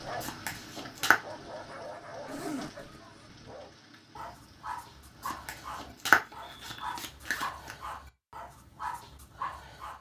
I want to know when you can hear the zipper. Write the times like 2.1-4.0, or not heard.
2.2-3.0, 6.3-7.7.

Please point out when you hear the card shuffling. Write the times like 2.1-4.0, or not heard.
0.2-1.2, 5.2-7.8.